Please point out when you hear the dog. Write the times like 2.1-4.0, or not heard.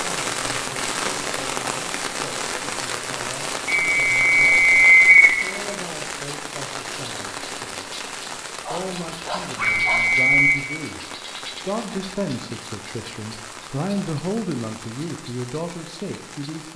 8.6-10.2.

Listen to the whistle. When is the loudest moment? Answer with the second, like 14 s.
5 s.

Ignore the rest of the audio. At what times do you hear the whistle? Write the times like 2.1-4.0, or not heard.
3.6-5.3, 9.6-10.6.